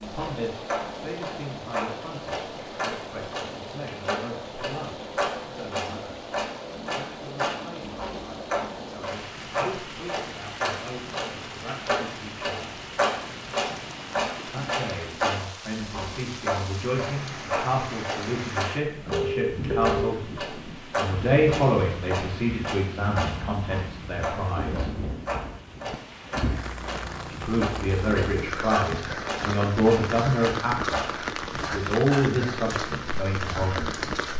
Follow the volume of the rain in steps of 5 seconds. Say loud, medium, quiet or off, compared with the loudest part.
medium, medium, medium, medium, medium, loud, loud.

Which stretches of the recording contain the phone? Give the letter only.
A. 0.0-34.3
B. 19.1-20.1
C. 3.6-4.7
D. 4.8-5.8
B.